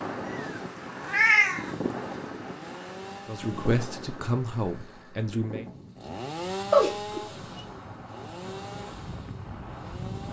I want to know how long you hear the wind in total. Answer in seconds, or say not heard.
10 s.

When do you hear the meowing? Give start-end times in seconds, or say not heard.
0.2-1.9, 6.7-7.6.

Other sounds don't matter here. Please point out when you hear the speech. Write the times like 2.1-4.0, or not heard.
3.2-5.7.